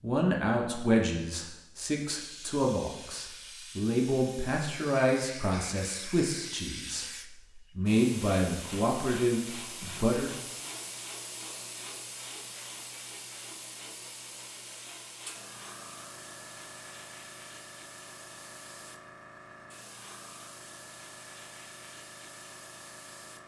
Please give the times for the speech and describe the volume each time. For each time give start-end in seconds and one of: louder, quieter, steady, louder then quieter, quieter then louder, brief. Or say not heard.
0.0-10.3 steady.